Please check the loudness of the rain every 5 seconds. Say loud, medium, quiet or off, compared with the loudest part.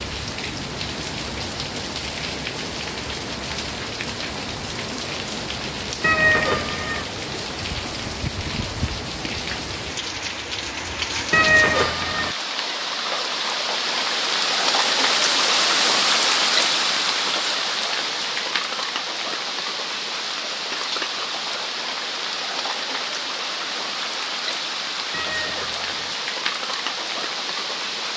medium, medium, loud, loud, medium, medium.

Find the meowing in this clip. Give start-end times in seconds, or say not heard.
6.0-7.0, 11.3-12.3, 25.1-26.1.